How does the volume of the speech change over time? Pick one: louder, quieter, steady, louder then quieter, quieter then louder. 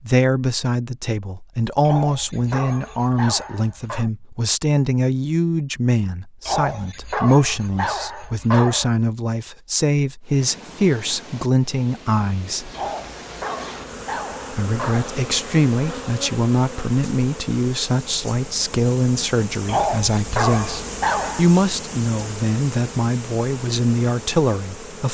steady.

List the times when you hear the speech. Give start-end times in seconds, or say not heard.
0.1-12.7, 14.5-25.0.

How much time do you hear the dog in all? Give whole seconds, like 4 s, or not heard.
9 s.